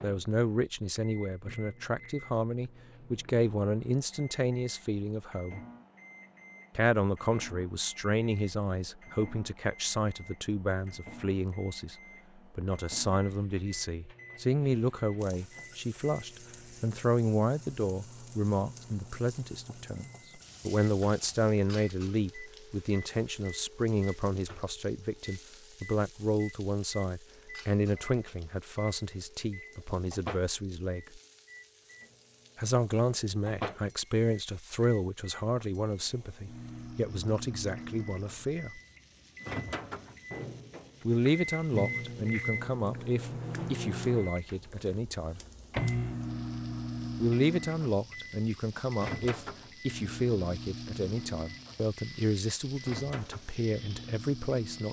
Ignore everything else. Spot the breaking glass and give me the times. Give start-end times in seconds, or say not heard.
not heard.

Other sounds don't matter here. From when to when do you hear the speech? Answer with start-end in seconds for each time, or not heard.
0.0-5.6, 6.8-11.9, 12.6-31.2, 32.5-38.8, 41.0-45.4, 47.1-54.8.